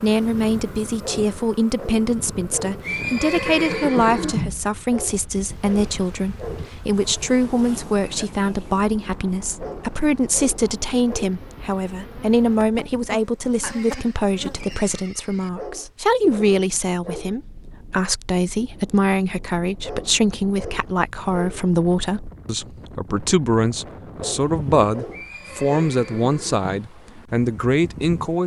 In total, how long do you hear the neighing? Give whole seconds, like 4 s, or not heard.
5 s.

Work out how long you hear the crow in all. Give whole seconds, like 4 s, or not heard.
not heard.